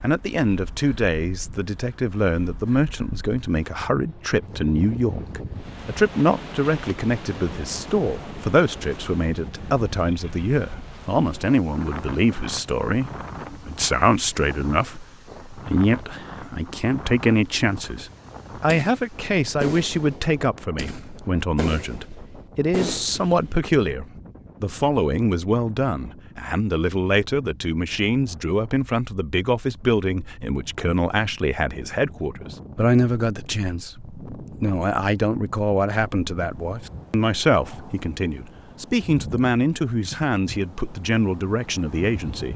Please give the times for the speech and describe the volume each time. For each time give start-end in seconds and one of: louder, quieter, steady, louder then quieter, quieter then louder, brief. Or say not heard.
0.0-42.5 steady.